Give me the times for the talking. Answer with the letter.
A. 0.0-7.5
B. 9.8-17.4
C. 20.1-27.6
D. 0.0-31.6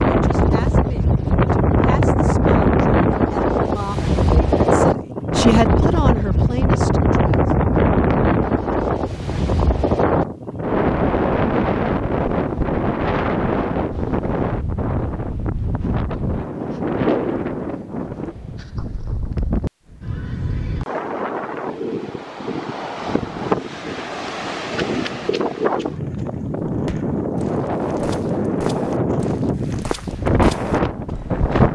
A.